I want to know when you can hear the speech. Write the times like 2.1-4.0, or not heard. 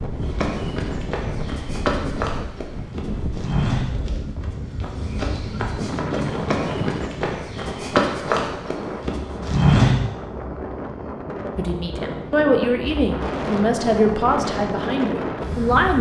11.6-15.9.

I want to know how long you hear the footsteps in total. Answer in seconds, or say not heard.
10 s.